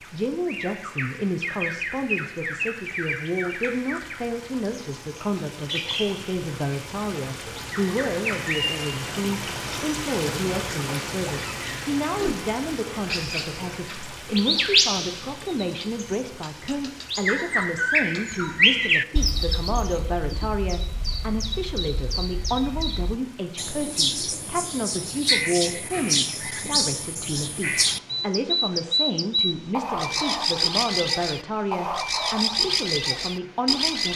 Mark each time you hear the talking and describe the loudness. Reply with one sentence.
You can hear the talking from 0.0 to 34.1 s, at a steady volume.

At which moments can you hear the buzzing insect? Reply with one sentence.
The buzzing insect can't be heard in this clip.